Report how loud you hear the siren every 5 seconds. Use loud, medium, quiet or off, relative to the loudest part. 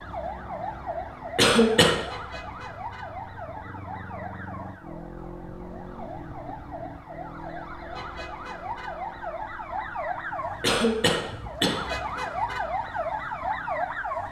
medium, medium, loud.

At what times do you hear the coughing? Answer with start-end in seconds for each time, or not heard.
1.4-1.9, 10.6-11.8.